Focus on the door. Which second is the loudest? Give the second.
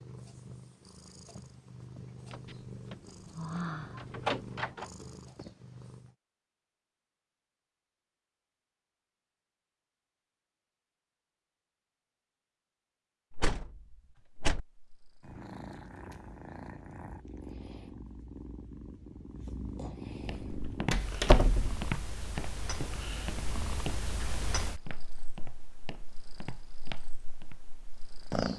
21 s.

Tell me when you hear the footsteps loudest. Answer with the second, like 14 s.
21 s.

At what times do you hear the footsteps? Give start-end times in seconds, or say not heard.
20.2-27.6.